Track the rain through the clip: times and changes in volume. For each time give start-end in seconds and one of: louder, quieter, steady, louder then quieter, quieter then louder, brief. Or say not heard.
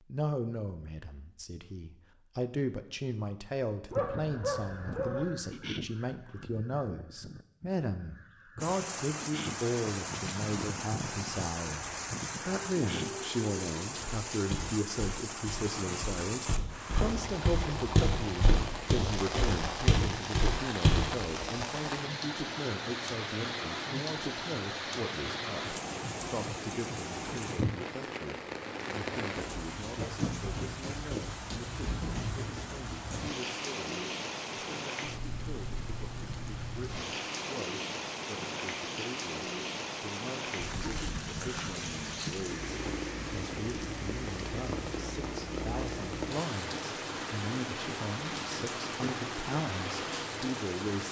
8.6-51.0 steady.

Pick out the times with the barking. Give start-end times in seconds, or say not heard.
3.9-5.2.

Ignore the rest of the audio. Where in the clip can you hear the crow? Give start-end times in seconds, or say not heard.
3.9-13.3.